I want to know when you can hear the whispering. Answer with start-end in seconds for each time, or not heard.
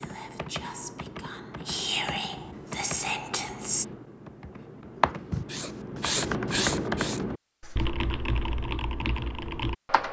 0.0-3.9.